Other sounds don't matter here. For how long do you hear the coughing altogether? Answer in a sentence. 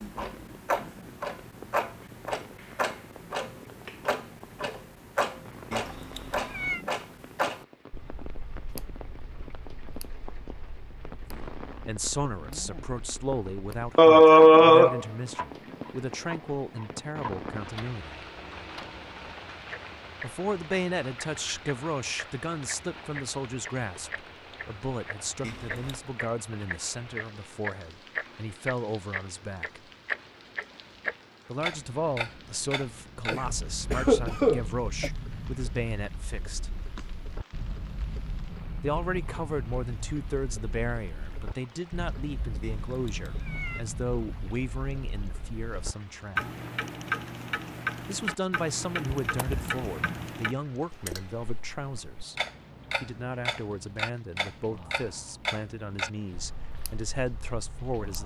The coughing can be heard for 4 seconds in total.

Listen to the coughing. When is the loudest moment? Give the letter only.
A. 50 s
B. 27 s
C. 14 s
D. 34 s
C.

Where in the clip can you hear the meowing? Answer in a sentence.
You can hear the meowing from 5.7 to 6.8 s, from 25.4 to 26.1 s and from 42.6 to 43.9 s.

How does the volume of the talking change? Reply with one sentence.
The volume of the talking stays about the same.